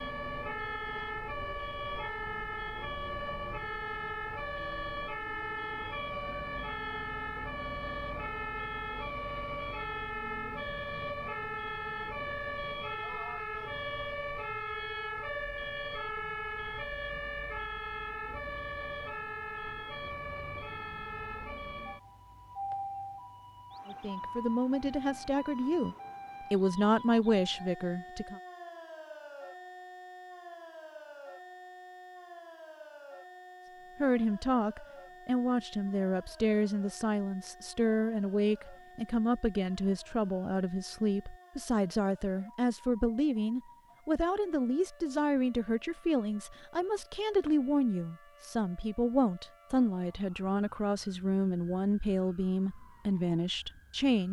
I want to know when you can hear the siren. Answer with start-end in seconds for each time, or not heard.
0.0-54.2.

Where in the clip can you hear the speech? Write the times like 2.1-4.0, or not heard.
23.9-28.4, 34.0-54.2.